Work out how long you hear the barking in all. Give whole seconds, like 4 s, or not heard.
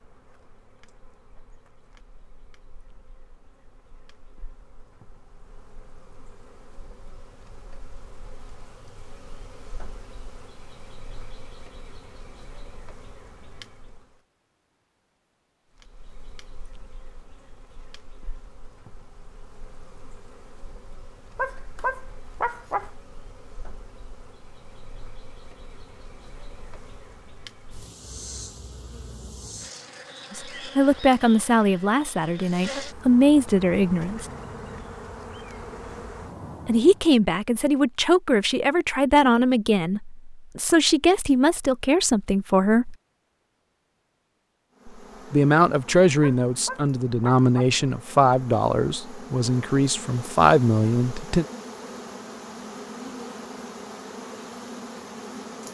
3 s.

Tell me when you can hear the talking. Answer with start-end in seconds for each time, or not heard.
30.3-34.2, 36.6-43.0, 44.9-51.5.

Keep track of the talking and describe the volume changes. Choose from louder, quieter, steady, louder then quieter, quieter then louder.
steady.